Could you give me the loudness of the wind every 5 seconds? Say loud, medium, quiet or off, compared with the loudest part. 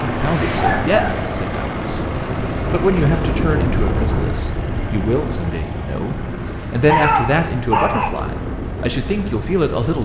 loud, medium.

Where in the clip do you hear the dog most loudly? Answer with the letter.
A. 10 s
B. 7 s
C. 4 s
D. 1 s
B.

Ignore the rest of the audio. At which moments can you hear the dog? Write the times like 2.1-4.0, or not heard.
0.6-1.2, 6.2-8.1.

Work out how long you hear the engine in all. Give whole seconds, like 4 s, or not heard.
10 s.